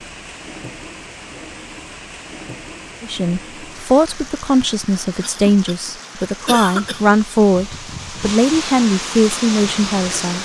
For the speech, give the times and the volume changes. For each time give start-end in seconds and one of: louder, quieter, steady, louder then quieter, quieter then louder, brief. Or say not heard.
3.0-10.4 steady.